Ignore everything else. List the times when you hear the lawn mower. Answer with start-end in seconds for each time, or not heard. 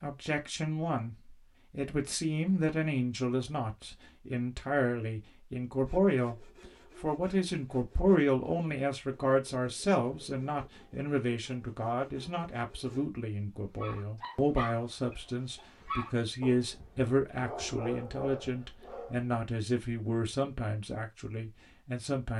not heard.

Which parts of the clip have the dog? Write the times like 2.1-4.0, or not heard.
13.8-19.3.